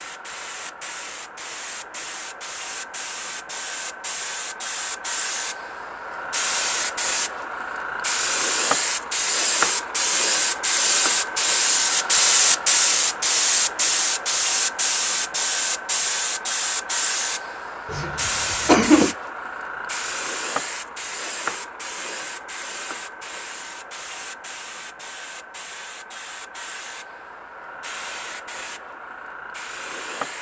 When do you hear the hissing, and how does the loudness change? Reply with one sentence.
You can hear the hissing from 0.0 to 30.3 s, getting louder then quieter.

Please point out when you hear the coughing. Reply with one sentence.
The coughing can be heard from 17.9 to 19.1 s.